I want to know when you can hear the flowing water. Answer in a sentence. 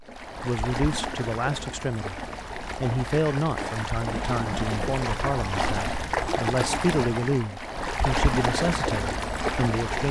The flowing water can be heard from 0.1 to 10.0 s.